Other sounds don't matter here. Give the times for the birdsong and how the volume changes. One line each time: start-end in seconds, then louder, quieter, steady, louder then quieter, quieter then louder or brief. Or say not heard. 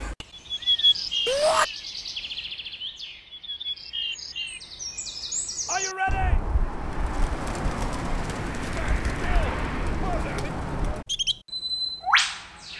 0.0-12.7 quieter then louder.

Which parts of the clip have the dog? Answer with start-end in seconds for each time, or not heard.
not heard.